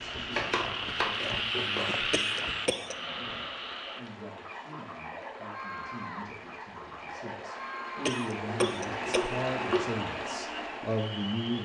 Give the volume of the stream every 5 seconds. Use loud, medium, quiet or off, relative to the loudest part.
medium, loud, loud.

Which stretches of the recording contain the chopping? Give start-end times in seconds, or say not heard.
0.3-2.5, 8.4-9.9.